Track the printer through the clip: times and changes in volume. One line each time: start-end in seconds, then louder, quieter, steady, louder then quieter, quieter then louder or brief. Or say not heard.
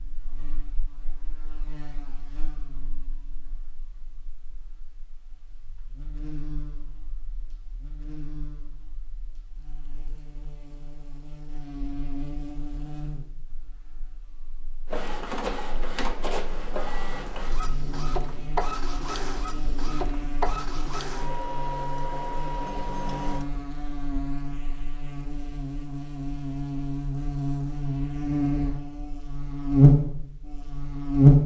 14.8-23.4 steady.